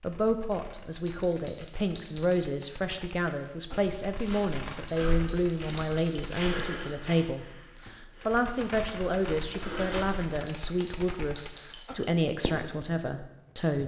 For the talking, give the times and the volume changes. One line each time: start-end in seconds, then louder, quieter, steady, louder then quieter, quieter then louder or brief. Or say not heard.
0.0-13.8 steady.